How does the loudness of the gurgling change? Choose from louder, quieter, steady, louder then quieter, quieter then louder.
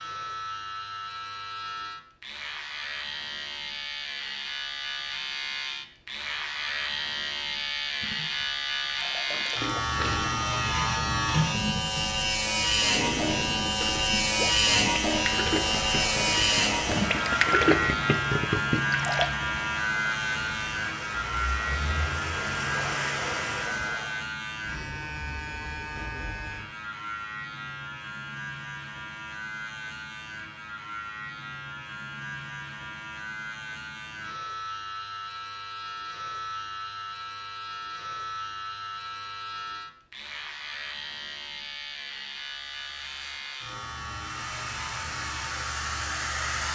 louder.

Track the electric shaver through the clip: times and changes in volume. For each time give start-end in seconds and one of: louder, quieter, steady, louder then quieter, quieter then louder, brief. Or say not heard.
0.0-46.7 louder then quieter.